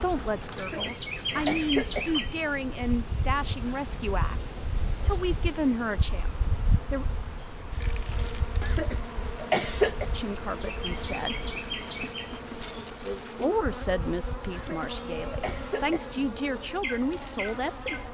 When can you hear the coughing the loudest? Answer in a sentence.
The volume of the coughing peaks at 10 seconds.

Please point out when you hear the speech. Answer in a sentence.
The speech can be heard from 0.0 to 7.0 s, from 10.1 to 11.4 s and from 13.2 to 17.9 s.